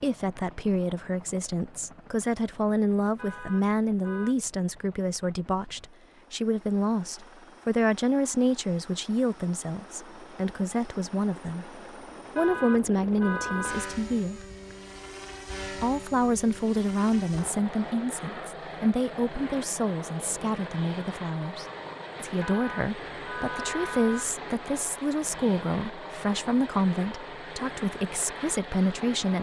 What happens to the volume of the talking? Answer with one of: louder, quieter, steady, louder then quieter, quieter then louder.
steady.